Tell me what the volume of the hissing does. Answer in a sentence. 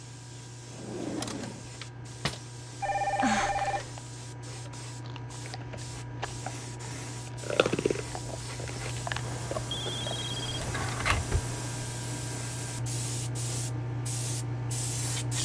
The volume of the hissing goes up.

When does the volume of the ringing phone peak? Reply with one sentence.
The volume of the ringing phone peaks at 3 seconds.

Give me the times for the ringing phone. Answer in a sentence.
The ringing phone can be heard from 2.8 to 4.0 s and from 9.2 to 11.7 s.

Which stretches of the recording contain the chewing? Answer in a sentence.
You can hear the chewing from 4.7 to 10.2 s.